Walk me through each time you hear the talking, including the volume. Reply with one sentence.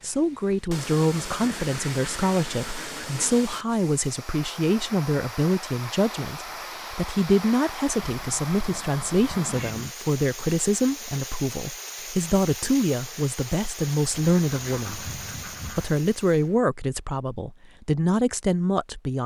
The talking can be heard from 0.0 to 19.2 s, at a steady volume.